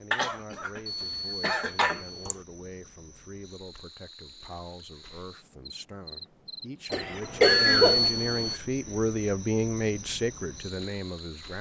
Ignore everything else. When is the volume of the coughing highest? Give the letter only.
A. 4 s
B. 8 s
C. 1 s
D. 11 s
B.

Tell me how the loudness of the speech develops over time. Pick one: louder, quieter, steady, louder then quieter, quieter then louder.
louder.